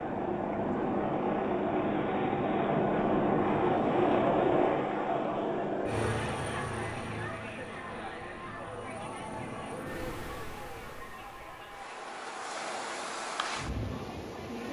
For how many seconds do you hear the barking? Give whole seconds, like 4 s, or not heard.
not heard.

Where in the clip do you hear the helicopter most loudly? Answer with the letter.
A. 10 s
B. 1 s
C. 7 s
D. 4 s
D.